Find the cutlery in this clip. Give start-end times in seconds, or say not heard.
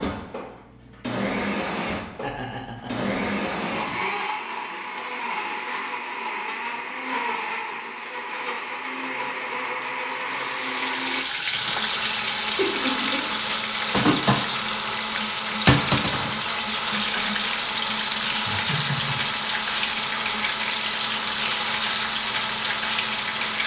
not heard.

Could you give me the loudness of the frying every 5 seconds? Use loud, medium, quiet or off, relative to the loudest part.
off, off, loud, loud, loud.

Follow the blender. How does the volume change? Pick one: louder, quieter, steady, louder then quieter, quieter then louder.
steady.